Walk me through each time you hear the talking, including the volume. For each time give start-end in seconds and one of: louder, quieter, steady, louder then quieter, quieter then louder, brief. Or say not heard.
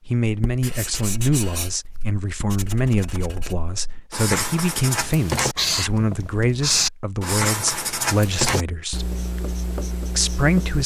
0.1-9.1 steady
10.2-10.8 brief.